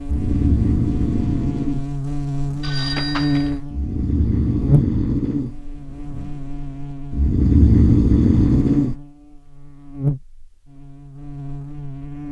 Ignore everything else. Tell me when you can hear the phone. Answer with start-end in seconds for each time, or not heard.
2.6-3.5.